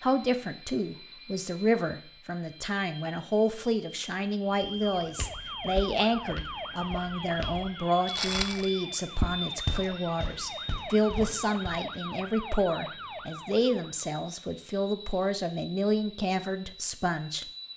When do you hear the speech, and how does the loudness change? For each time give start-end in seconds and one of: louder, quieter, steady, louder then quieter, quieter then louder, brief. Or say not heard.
0.0-17.4 steady.